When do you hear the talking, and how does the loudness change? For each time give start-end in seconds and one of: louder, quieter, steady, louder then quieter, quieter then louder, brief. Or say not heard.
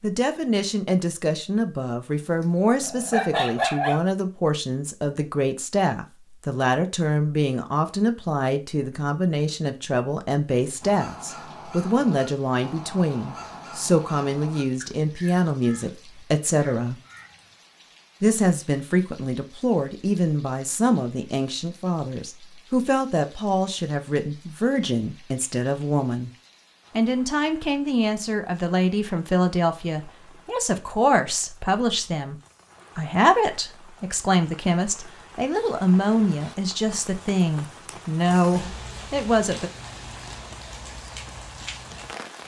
0.0-17.0 steady
18.2-26.3 steady
26.9-39.7 steady.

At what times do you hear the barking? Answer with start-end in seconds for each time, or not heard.
2.8-4.0.